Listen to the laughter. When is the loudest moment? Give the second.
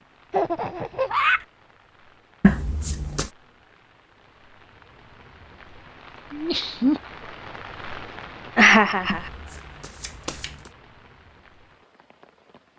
9 s.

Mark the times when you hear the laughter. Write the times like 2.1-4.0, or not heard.
0.3-1.4, 6.3-7.0, 8.6-9.3.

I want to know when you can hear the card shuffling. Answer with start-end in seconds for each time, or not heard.
2.4-3.3, 9.1-10.7.